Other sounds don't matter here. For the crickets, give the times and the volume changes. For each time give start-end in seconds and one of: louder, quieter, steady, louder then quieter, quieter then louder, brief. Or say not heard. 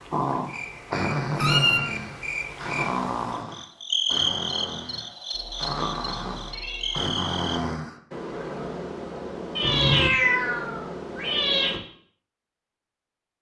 0.0-7.6 louder then quieter.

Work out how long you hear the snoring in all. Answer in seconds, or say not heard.
12 s.